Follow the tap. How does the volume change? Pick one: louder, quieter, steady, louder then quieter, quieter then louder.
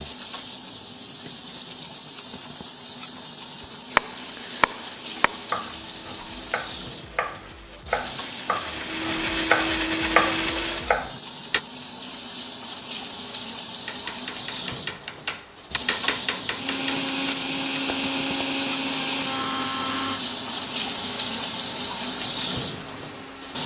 louder.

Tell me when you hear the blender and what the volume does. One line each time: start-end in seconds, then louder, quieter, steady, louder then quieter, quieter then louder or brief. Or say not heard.
4.1-10.9 louder
16.5-23.6 quieter.